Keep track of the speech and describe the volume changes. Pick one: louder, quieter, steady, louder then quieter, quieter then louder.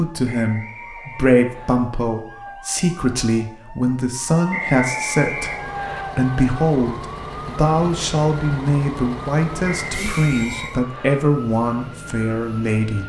steady.